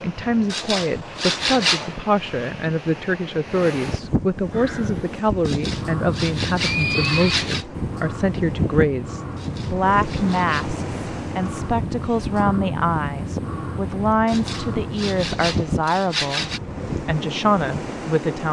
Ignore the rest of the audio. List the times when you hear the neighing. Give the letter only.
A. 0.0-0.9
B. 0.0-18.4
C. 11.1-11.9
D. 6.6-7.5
D.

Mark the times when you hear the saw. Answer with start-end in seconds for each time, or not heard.
0.5-1.9, 5.5-7.7, 9.3-10.8, 14.2-16.6.